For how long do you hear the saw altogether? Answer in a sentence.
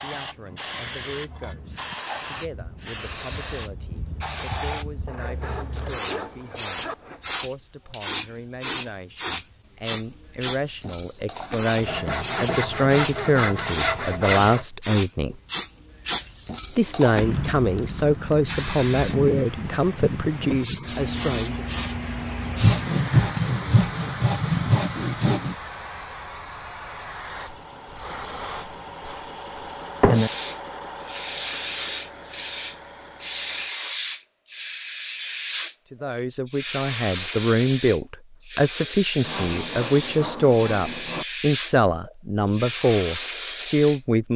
You can hear the saw for 10 seconds altogether.